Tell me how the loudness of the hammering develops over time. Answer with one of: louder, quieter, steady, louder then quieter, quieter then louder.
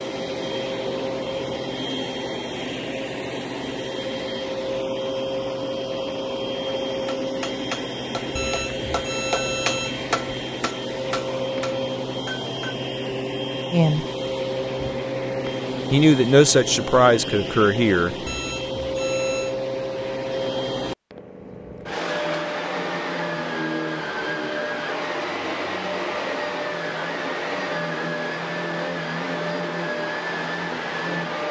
louder then quieter.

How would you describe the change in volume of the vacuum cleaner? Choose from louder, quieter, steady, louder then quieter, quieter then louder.
steady.